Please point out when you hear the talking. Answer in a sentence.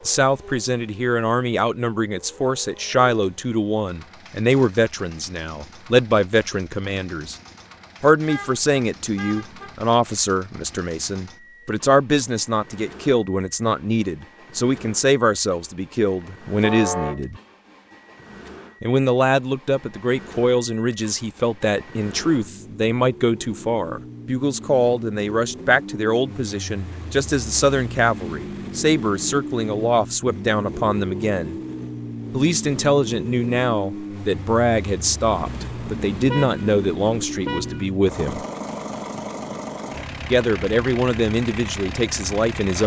The talking can be heard from 0.1 to 7.3 s, from 8.0 to 17.4 s, from 18.8 to 31.6 s, from 32.3 to 38.5 s and from 40.3 to 42.8 s.